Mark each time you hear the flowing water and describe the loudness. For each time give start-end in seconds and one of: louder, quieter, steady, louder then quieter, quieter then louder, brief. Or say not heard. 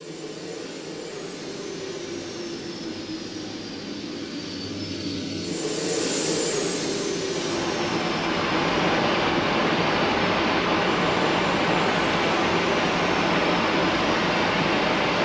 7.3-15.1 steady.